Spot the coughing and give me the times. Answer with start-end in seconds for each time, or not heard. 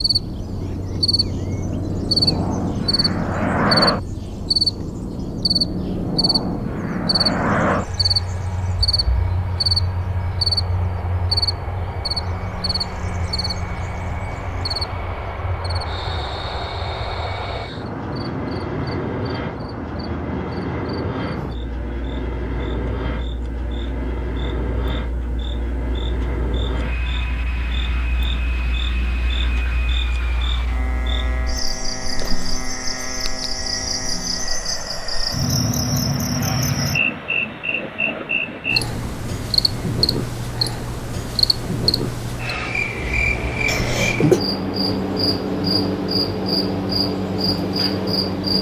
43.6-44.4.